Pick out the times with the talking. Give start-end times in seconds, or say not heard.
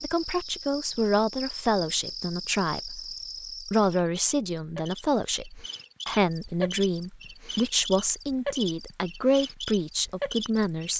0.0-10.9.